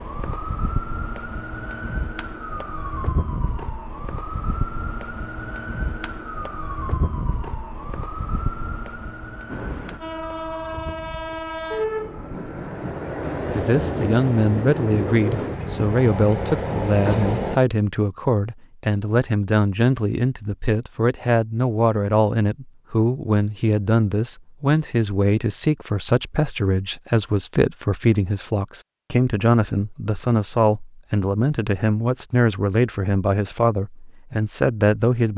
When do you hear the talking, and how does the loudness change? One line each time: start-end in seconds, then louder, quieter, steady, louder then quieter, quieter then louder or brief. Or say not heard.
13.5-35.3 steady.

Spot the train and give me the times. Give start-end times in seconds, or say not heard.
9.4-17.6.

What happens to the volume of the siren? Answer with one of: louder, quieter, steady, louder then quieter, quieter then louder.
quieter.